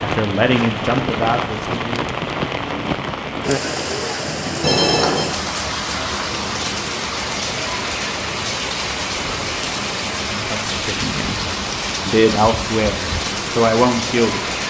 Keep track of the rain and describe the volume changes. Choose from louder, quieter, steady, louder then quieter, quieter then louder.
steady.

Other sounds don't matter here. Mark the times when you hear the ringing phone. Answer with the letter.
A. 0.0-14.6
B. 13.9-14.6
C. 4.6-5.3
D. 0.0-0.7
C.